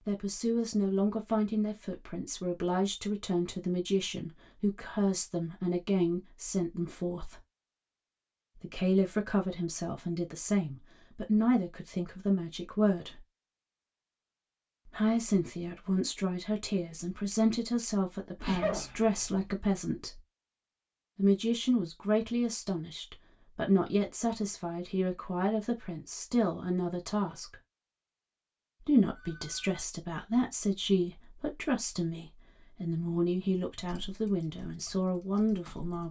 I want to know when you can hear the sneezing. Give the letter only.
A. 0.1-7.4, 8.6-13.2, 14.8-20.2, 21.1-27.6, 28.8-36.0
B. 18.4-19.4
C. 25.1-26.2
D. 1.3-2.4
B.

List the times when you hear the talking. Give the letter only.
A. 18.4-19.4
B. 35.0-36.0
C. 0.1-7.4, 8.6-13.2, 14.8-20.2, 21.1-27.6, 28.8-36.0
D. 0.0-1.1
C.